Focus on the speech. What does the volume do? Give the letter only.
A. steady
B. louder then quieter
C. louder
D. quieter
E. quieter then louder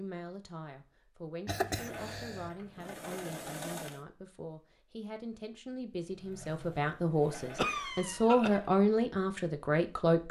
C.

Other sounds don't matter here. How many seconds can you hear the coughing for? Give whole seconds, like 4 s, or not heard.
2 s.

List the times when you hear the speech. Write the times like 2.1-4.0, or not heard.
0.0-10.2.